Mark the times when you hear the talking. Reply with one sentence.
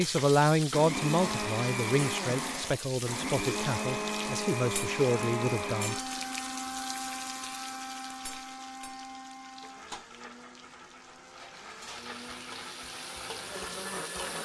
The talking can be heard from 0.0 to 6.0 s.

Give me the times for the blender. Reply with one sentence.
You can hear the blender from 0.0 to 14.4 s.